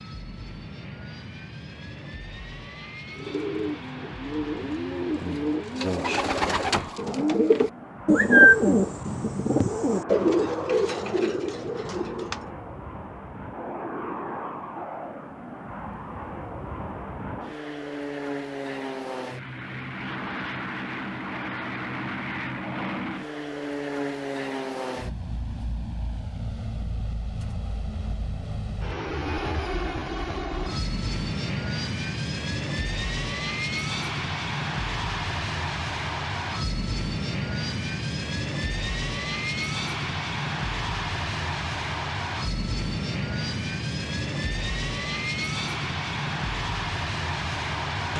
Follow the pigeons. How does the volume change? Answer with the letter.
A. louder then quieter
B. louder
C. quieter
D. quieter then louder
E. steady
A.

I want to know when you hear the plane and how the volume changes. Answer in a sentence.
You can hear the plane from 0.0 to 48.1 s, getting louder.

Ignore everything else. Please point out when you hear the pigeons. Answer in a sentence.
You can hear the pigeons from 3.1 to 12.5 s.